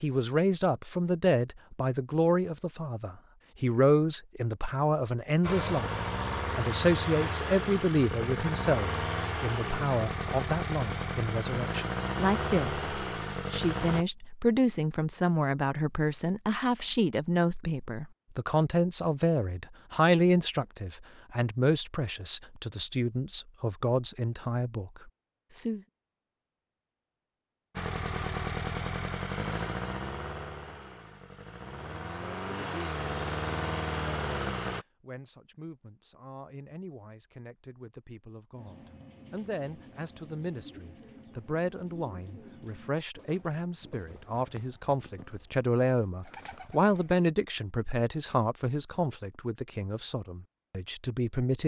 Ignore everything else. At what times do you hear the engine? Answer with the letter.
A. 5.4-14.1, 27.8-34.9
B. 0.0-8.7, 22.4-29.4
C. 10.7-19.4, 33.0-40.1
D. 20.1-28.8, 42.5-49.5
A.